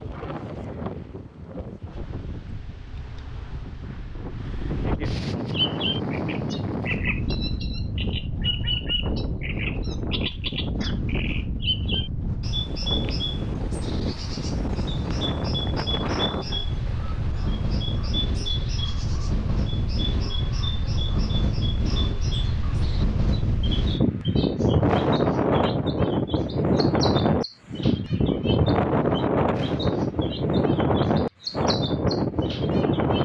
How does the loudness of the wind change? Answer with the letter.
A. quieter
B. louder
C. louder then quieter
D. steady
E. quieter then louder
B.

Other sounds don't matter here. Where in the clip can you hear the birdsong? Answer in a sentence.
You can hear the birdsong from 5.5 to 33.2 s.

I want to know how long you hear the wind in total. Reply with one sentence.
The wind can be heard for 33 seconds in total.